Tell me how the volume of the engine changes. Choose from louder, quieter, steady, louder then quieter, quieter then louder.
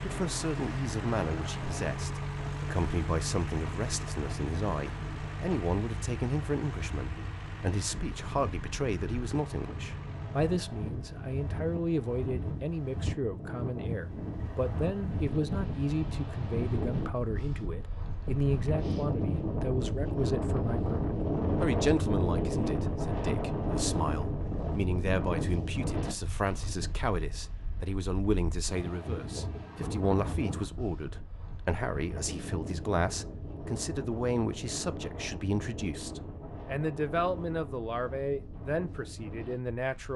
quieter.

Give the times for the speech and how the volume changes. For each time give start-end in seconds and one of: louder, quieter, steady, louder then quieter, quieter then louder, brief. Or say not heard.
0.0-40.1 steady.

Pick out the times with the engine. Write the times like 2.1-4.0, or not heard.
0.0-10.6.